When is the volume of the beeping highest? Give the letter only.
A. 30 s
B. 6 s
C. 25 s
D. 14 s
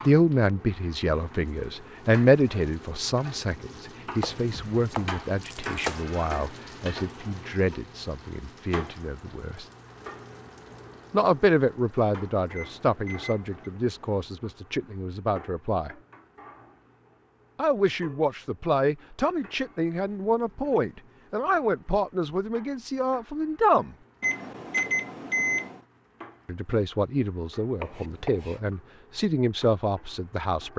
C.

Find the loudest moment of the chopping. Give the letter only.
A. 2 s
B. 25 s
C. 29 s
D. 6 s
D.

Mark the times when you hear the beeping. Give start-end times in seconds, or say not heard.
12.6-13.7, 24.2-25.8.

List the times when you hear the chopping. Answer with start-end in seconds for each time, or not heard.
4.2-6.0, 27.8-28.6.